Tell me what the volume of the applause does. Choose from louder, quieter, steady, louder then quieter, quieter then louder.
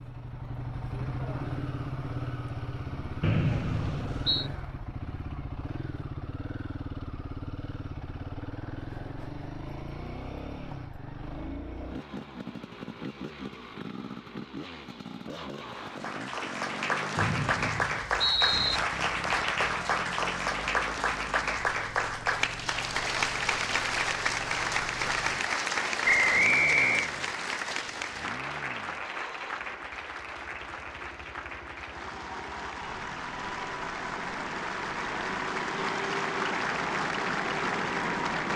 quieter then louder.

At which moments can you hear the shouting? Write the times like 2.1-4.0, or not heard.
not heard.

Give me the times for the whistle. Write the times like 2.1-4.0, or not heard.
3.2-4.5, 17.1-18.8, 26.1-27.1.